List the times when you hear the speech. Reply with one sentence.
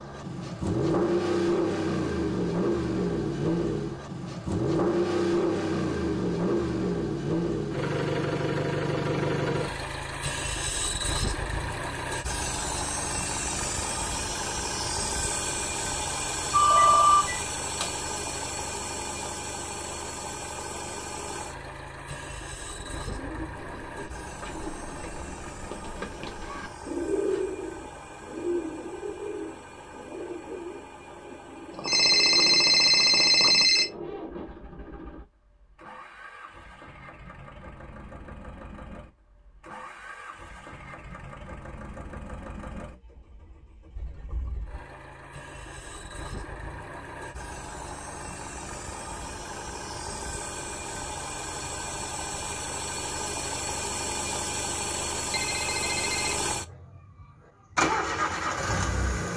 You can't hear the speech here.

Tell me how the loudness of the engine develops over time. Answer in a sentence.
The loudness of the engine goes down, then up.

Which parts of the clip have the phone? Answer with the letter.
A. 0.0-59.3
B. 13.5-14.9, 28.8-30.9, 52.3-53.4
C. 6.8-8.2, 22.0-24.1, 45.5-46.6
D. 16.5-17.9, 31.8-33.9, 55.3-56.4
D.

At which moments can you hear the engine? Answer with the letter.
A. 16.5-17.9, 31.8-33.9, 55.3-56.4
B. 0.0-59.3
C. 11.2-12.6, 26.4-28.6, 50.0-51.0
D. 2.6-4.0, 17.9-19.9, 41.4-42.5
B.